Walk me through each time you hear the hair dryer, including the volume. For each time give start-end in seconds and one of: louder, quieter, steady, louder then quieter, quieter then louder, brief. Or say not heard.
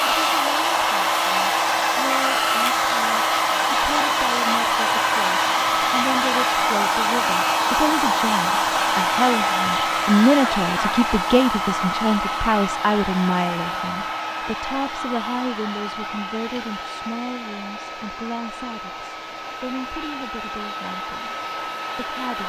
0.0-22.4 quieter.